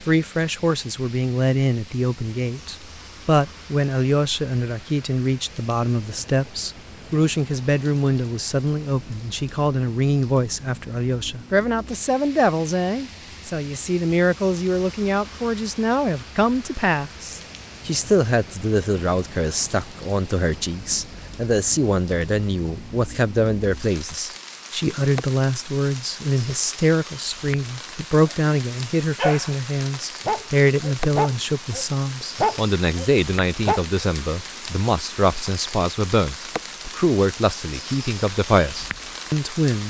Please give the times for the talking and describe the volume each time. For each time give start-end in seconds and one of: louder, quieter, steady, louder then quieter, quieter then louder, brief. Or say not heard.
0.0-39.8 steady.